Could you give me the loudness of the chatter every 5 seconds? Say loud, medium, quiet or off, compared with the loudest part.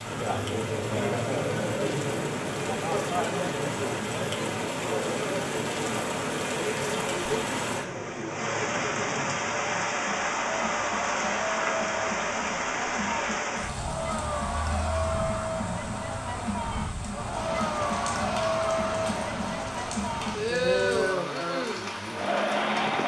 loud, medium, medium, loud, loud.